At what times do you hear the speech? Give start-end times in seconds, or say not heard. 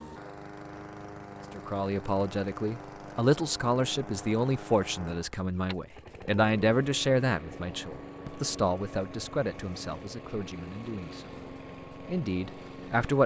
1.6-13.2.